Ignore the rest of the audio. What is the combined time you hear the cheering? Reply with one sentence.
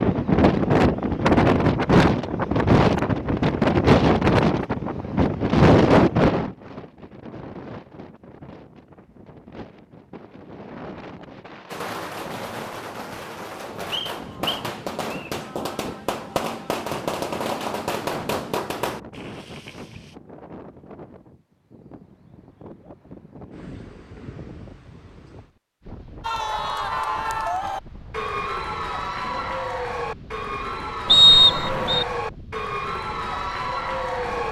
You can hear the cheering for 8 seconds altogether.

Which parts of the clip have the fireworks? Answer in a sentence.
You can hear the fireworks from 11.7 to 20.1 s.